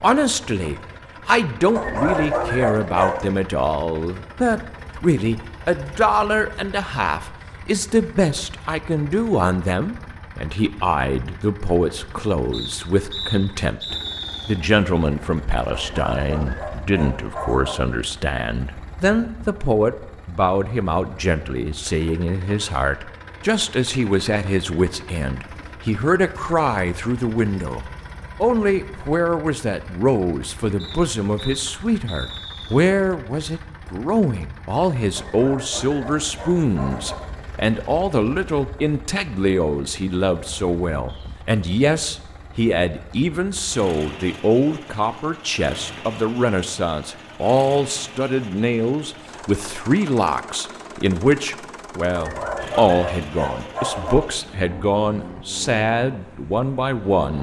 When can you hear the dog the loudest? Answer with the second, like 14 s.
2 s.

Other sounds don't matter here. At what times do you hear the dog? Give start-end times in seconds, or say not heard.
1.8-3.3, 15.7-17.8, 35.1-37.1, 52.1-54.1.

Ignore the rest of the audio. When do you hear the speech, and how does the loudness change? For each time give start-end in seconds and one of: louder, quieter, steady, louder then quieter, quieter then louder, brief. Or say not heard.
0.0-57.3 steady.